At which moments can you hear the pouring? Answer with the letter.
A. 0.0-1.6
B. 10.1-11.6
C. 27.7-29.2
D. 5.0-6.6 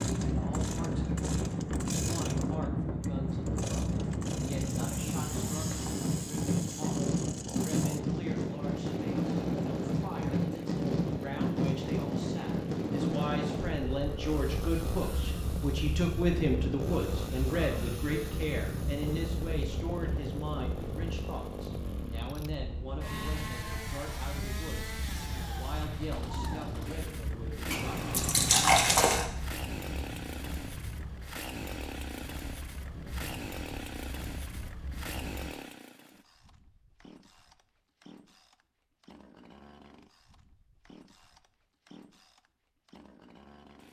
C.